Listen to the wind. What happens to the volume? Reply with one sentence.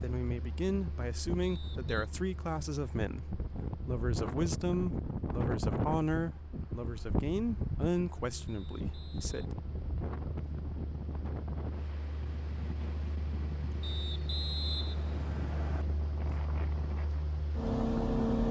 The volume of the wind goes up, then down.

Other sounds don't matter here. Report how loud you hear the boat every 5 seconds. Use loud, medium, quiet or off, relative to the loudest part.
quiet, quiet, quiet, loud.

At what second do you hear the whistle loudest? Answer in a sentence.
The volume of the whistle peaks at 15 seconds.